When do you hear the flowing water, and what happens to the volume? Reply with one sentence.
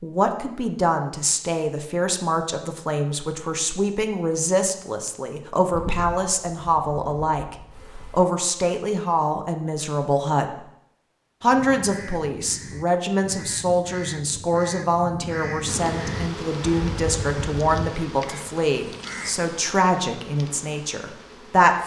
The flowing water can't be heard in this clip.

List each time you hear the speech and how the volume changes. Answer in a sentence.
The speech can be heard from 0.0 to 10.7 s, at a steady volume; and from 11.4 to 21.8 s, at a steady volume.